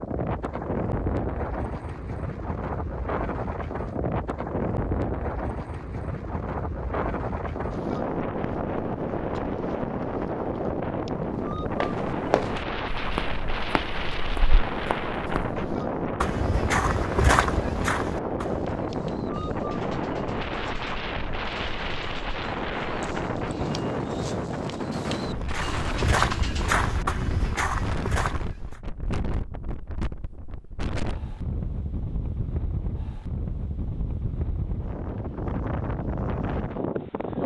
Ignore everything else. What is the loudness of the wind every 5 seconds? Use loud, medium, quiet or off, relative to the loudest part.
loud, loud, loud, loud, loud, medium, medium, loud.